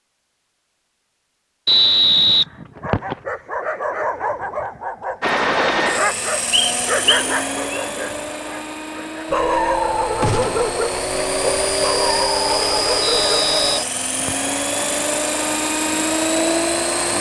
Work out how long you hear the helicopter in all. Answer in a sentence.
The helicopter can be heard for 12 seconds in total.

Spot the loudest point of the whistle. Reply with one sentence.
The loudest moment of the whistle is at 2 seconds.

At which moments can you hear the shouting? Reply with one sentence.
You can't hear the shouting here.